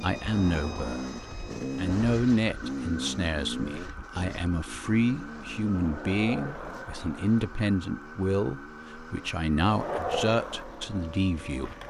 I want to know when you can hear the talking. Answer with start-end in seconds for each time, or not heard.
0.0-11.8.